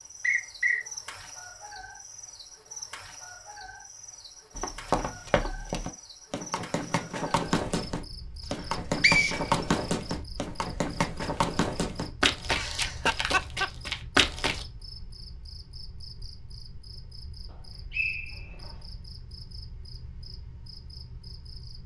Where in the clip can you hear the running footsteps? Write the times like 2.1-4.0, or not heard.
4.5-14.7.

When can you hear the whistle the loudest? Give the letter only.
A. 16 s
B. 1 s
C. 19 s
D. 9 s
D.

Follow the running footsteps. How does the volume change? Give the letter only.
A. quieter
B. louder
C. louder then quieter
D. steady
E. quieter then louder
B.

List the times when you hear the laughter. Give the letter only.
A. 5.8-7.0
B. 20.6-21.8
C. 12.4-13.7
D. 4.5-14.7
C.